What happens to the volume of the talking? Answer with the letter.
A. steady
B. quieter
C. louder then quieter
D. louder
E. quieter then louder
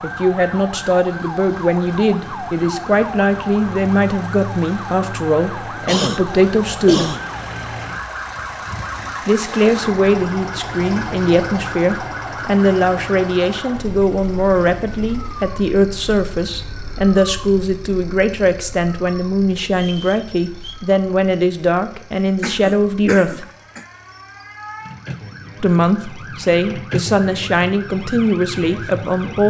A.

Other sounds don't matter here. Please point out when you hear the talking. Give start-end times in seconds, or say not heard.
0.0-7.2, 9.2-23.4, 25.6-29.4.